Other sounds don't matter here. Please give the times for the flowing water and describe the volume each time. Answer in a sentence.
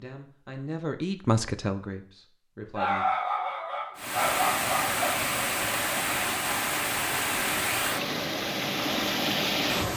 The flowing water can be heard from 4.0 to 9.9 s, at a steady volume.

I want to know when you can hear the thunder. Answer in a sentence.
The thunder can't be heard in this clip.